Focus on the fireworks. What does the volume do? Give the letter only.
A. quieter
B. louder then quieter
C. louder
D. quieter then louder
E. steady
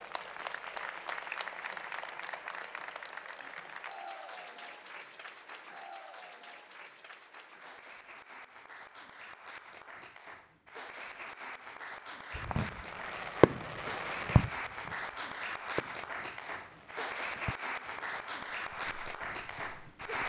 D.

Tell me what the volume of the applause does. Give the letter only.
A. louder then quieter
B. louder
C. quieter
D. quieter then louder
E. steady
D.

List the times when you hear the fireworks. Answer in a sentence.
You can hear the fireworks from 12.3 to 18.3 s.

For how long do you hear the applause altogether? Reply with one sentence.
You can hear the applause for 20 seconds altogether.